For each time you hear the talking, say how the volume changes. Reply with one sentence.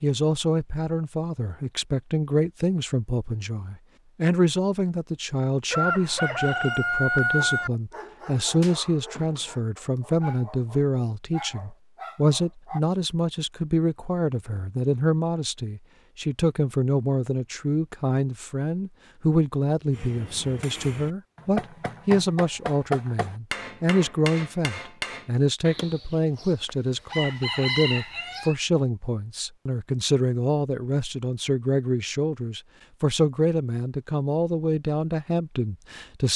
The talking can be heard from 0.0 to 36.3 s, at a steady volume.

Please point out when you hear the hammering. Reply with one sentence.
The hammering can be heard from 19.9 to 25.9 s.